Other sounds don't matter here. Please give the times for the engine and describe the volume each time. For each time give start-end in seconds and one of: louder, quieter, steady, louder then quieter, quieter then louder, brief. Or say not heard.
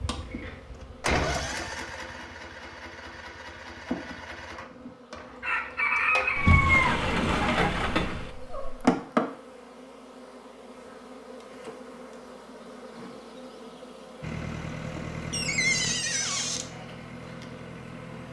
0.0-4.7 quieter
14.2-18.2 quieter.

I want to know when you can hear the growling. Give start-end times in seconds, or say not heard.
not heard.